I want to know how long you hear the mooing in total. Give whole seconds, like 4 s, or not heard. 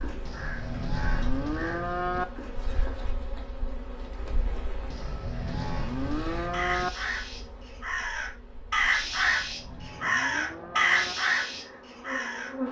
6 s.